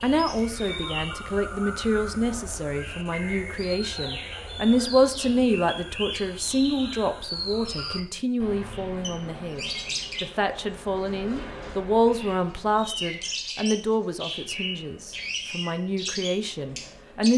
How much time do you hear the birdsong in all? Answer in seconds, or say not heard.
17 s.